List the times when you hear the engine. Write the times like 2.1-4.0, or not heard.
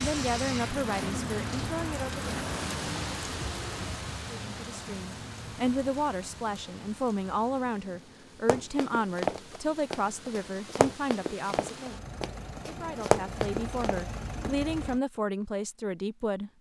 0.0-15.0.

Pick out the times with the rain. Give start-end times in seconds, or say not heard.
0.0-10.8.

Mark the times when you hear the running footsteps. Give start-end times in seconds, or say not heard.
8.4-14.7.